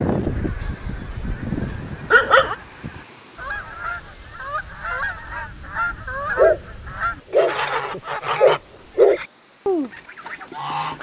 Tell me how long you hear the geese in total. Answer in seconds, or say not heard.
11 s.